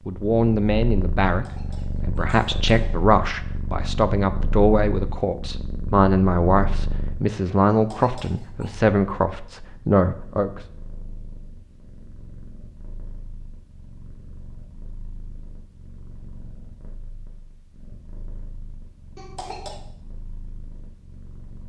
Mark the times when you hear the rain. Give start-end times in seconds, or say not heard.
not heard.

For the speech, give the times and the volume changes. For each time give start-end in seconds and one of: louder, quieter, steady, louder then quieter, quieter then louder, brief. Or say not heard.
0.1-10.5 steady.